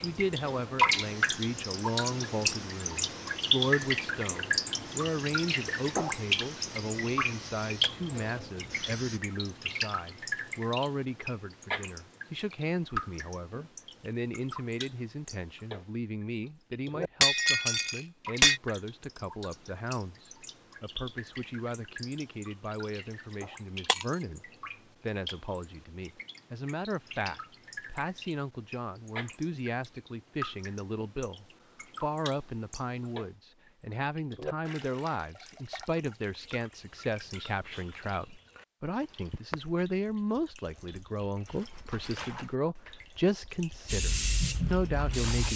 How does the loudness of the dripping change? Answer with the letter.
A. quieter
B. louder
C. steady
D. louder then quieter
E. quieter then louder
A.